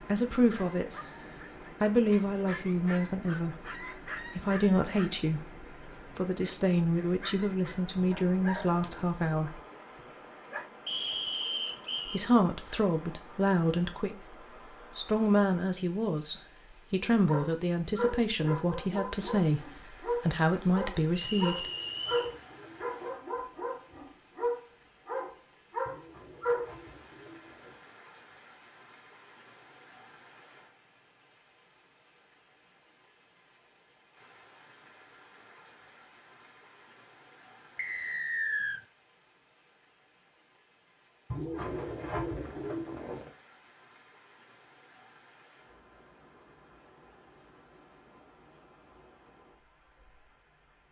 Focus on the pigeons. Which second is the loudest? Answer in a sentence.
The loudest moment of the pigeons is at 42 seconds.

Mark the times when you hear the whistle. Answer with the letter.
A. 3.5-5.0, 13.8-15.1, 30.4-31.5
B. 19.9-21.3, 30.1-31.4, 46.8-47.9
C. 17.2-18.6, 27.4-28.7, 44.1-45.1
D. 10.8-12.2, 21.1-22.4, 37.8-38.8
D.